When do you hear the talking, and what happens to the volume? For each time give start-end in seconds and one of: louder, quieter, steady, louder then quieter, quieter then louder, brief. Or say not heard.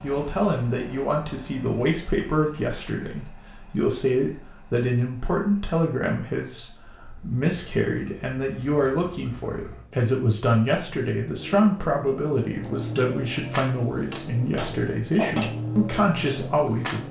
0.0-17.0 steady.